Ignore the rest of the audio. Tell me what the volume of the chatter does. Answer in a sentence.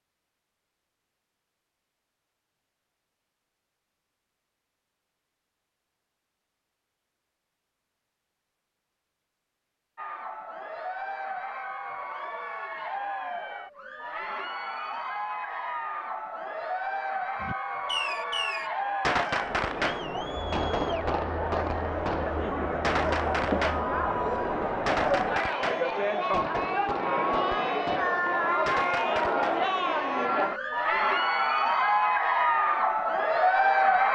The volume of the chatter goes up.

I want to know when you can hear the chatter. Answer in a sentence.
You can hear the chatter from 9.9 to 34.0 s.